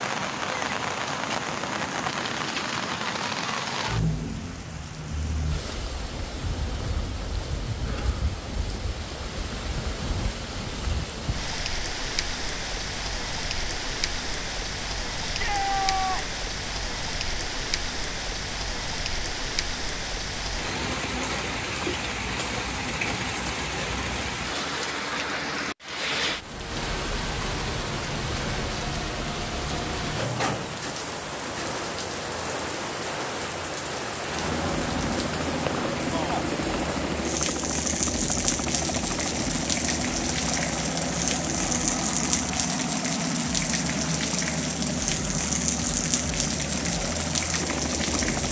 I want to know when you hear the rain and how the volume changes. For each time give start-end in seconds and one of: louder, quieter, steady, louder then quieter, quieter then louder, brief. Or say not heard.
0.0-48.4 steady.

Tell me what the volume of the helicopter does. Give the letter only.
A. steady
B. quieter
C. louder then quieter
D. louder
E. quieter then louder
A.